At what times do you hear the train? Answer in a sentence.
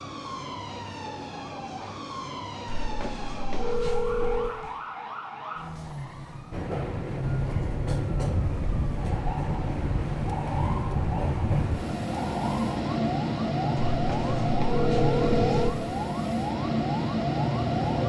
You can hear the train from 6.5 to 18.0 s.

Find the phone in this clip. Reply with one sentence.
You can hear the phone from 2.6 to 4.5 s and from 13.9 to 15.7 s.